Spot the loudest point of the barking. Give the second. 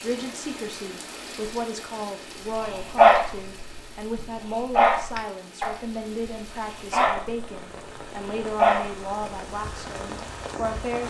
3 s.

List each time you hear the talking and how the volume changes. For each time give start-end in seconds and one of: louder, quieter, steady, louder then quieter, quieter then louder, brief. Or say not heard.
0.0-11.0 steady.